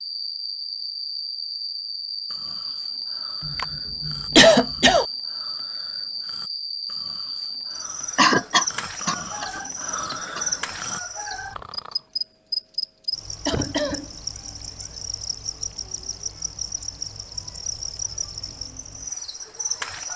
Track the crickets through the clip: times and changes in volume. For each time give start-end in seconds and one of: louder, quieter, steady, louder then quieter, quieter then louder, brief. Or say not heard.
0.0-20.1 steady.